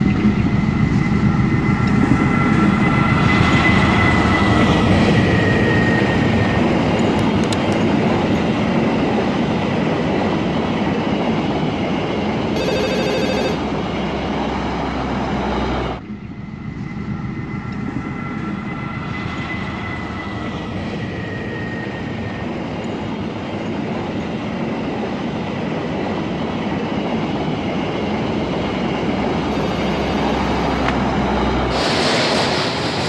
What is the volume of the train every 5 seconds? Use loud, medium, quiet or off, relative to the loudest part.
loud, loud, medium, medium, medium, medium, loud.